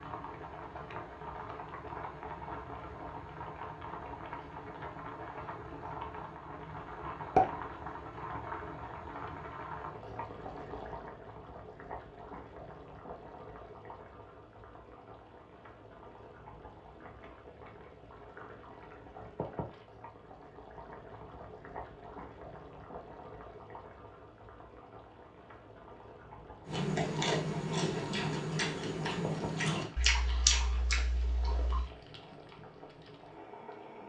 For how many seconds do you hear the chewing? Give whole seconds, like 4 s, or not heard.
5 s.